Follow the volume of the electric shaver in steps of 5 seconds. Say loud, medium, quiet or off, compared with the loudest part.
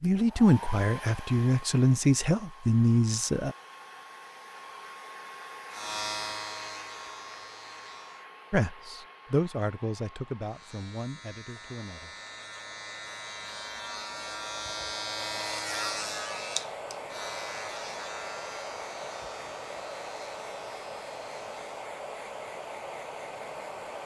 off, loud, loud, loud, quiet.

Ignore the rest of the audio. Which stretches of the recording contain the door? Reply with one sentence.
The door can't be heard in this clip.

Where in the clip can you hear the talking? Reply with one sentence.
The talking can be heard from 0.0 to 3.5 s and from 8.5 to 12.2 s.